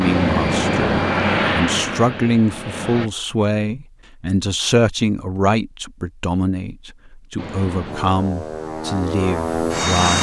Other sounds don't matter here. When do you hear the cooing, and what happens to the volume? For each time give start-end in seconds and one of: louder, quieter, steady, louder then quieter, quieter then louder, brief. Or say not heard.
not heard.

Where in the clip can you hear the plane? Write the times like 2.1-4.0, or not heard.
0.0-3.1, 7.3-10.1.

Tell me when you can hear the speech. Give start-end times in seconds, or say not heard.
0.0-10.1.